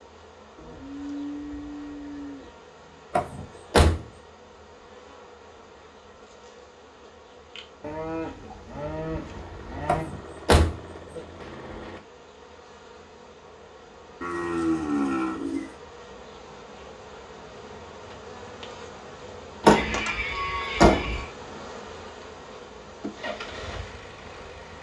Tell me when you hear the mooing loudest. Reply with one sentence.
The loudest moment of the mooing is at 15 seconds.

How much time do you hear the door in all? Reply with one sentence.
You can hear the door for 4 seconds altogether.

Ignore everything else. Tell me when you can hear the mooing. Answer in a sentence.
The mooing can be heard from 0.6 to 2.5 s, from 7.8 to 10.1 s, from 14.2 to 15.7 s and from 19.6 to 21.3 s.